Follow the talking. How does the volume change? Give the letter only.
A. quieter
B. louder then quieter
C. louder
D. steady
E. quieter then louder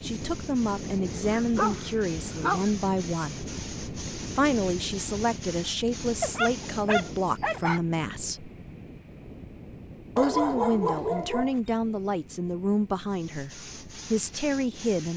D.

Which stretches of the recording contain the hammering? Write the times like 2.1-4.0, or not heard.
not heard.